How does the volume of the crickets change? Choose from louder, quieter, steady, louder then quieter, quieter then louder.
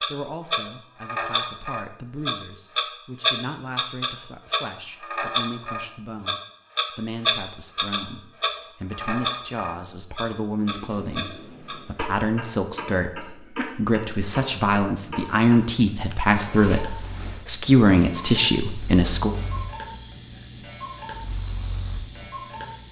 quieter then louder.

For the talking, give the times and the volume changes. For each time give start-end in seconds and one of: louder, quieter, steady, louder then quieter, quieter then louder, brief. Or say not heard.
0.0-19.3 louder.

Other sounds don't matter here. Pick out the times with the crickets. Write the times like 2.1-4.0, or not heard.
10.8-22.8.